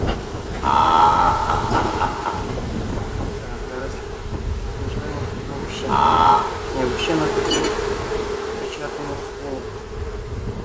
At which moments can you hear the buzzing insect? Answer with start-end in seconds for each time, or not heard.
0.0-10.6.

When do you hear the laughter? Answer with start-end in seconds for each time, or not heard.
0.6-2.4, 5.8-6.5.